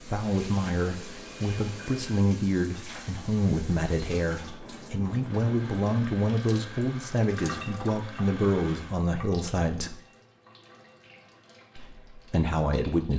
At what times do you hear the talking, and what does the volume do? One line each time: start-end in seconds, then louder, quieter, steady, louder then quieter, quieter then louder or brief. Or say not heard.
0.0-9.9 steady
11.8-13.1 brief.